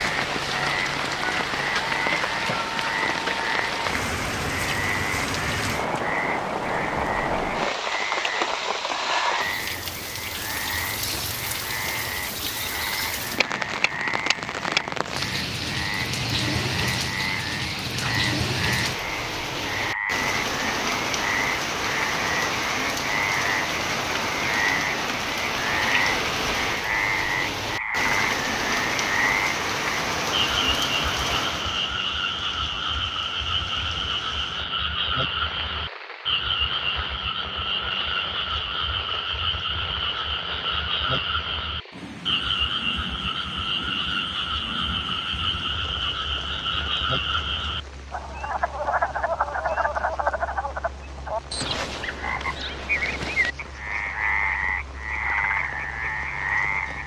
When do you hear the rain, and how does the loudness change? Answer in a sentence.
You can hear the rain from 0.0 to 57.0 s, getting quieter.